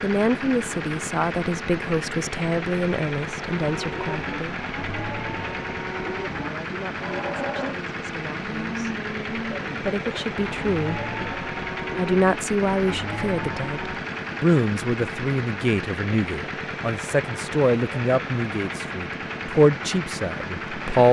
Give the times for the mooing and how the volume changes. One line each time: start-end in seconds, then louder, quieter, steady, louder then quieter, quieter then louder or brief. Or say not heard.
3.6-14.1 steady.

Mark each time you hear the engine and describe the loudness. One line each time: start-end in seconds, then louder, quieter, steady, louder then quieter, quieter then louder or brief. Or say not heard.
0.0-21.0 steady.